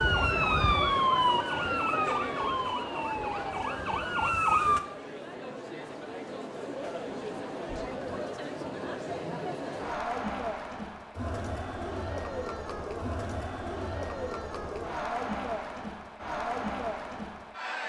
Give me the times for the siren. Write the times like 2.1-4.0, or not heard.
0.0-4.8.